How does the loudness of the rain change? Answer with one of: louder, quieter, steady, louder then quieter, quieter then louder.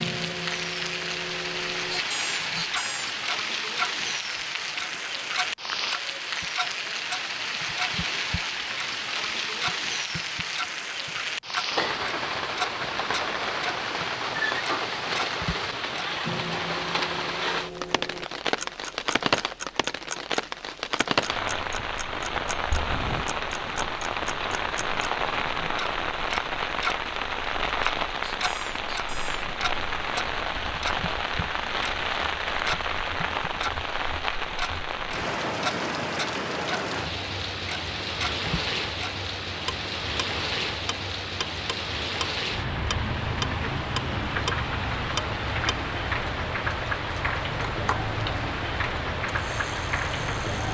steady.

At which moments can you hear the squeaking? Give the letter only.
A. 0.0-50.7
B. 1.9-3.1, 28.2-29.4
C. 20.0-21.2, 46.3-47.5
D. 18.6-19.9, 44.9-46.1
B.